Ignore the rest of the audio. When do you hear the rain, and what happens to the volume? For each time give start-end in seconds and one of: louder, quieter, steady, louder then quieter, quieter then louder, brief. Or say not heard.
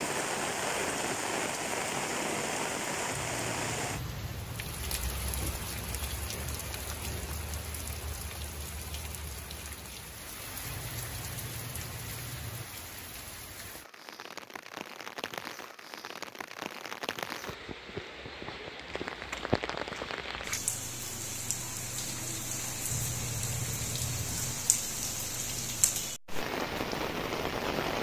0.0-27.9 quieter then louder.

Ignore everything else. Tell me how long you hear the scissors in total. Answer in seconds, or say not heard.
5 s.